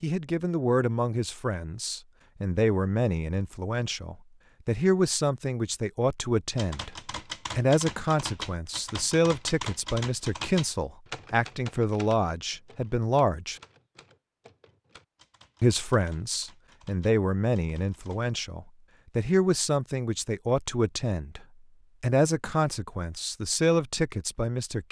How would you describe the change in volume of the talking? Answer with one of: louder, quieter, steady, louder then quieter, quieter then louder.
steady.